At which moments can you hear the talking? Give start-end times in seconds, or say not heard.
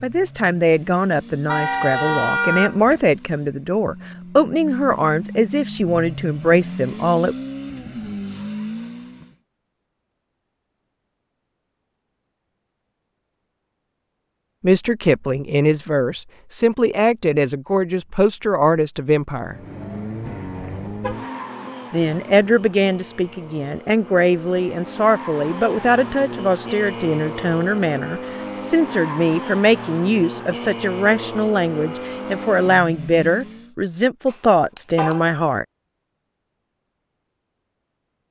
0.0-7.3, 14.6-19.6, 21.9-35.6.